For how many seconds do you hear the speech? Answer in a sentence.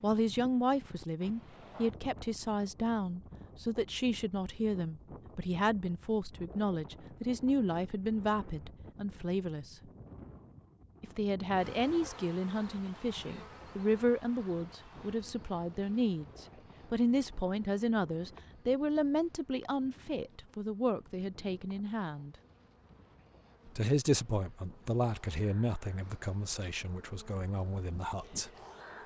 You can hear the speech for 26 seconds altogether.